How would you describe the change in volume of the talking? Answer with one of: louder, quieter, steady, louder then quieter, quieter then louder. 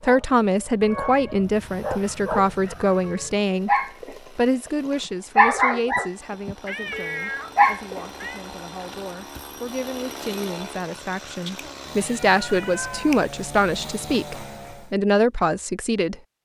quieter then louder.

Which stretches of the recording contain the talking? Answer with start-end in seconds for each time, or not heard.
0.0-3.7, 4.3-16.1.